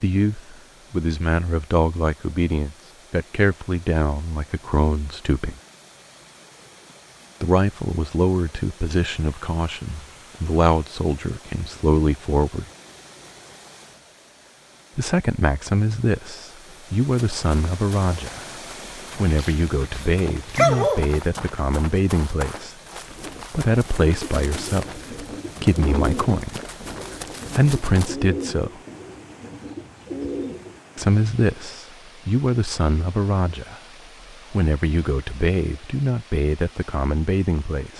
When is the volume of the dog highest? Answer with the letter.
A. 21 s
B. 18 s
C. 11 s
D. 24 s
A.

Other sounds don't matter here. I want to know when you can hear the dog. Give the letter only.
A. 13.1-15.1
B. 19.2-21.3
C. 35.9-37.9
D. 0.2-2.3
B.